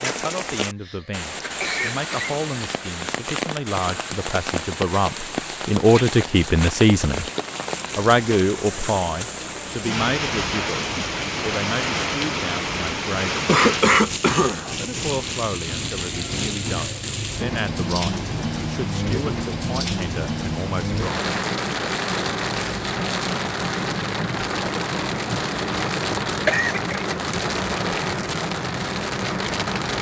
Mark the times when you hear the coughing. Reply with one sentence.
You can hear the coughing from 0.6 to 2.4 s, from 13.4 to 14.8 s and from 26.4 to 27.1 s.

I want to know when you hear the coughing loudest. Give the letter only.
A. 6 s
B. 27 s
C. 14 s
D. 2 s
C.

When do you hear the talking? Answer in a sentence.
You can hear the talking from 0.0 to 7.2 s, from 8.0 to 13.4 s and from 14.8 to 21.3 s.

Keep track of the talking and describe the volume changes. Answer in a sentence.
The loudness of the talking goes up, then down.